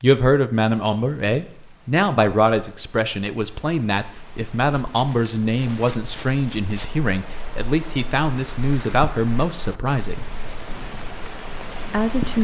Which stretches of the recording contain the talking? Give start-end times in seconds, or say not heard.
0.0-10.2, 11.9-12.4.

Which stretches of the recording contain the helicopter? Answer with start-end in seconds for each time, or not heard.
not heard.